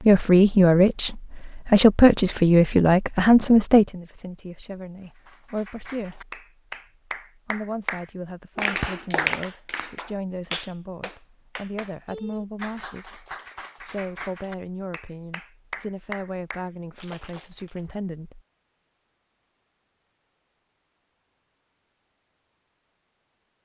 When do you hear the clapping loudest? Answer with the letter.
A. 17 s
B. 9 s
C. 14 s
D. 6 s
B.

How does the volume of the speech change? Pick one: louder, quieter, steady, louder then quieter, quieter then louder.
quieter.